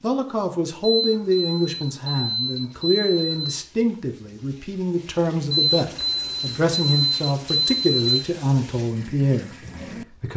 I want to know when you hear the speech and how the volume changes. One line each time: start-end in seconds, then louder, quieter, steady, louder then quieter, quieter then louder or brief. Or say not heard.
0.0-10.3 steady.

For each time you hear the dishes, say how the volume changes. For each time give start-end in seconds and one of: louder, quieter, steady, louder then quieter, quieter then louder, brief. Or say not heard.
not heard.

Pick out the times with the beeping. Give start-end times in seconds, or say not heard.
0.8-3.6, 5.5-8.2.